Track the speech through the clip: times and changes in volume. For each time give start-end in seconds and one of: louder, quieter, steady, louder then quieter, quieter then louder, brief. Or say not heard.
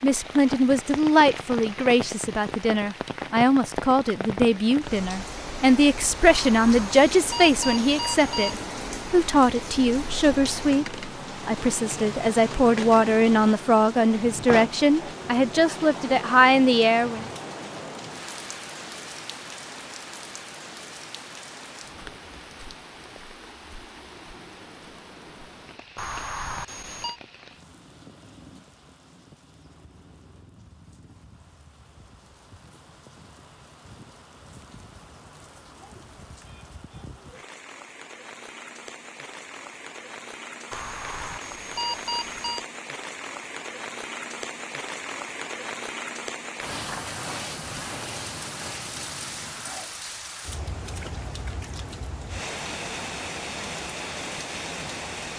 0.0-17.2 steady.